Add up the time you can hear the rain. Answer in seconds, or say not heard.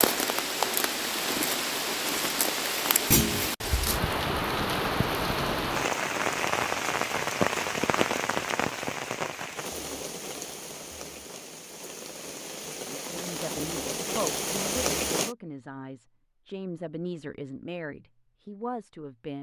15 s.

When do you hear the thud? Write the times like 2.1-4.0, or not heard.
3.1-3.5.